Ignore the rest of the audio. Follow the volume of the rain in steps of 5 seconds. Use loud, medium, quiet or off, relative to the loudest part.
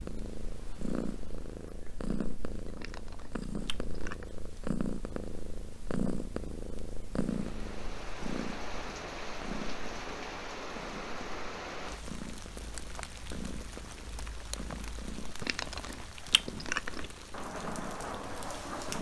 off, loud, loud, loud.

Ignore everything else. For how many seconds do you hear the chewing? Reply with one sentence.
The chewing can be heard for 3 seconds in total.